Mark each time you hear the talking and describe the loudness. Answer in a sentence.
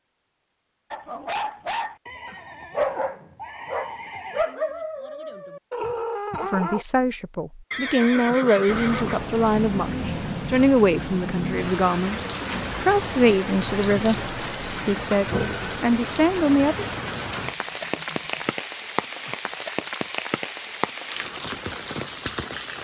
The talking can be heard from 6.4 to 17.0 s, at a steady volume.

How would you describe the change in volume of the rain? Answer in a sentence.
The volume of the rain stays about the same.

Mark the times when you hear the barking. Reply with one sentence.
The barking can be heard from 0.9 to 6.8 s.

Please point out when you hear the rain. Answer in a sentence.
The rain can be heard from 8.7 to 22.8 s.